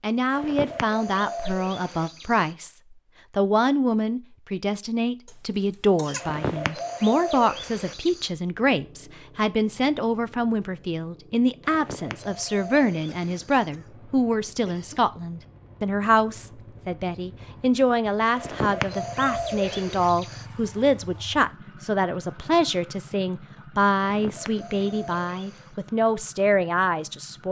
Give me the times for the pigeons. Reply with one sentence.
You can hear the pigeons from 0.3 to 2.5 s, from 6.2 to 8.3 s, from 11.7 to 13.7 s, from 18.4 to 20.4 s and from 24.0 to 25.8 s.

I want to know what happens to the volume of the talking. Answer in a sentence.
The volume of the talking stays about the same.